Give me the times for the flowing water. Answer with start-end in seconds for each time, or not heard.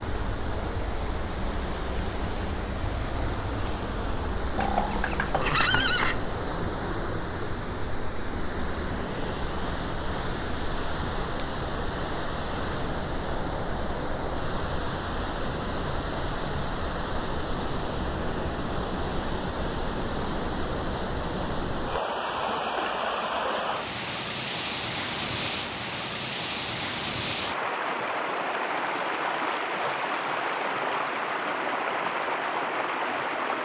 0.0-33.6.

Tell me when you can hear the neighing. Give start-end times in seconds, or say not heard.
4.5-6.2.